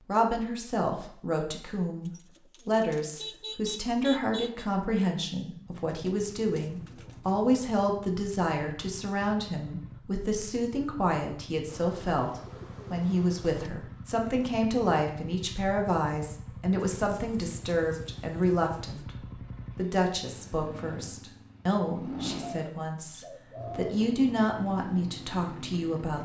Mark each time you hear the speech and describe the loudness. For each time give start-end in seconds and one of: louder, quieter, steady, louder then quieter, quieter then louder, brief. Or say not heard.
0.1-26.2 steady.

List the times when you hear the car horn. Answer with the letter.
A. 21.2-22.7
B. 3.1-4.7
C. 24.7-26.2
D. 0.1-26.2
B.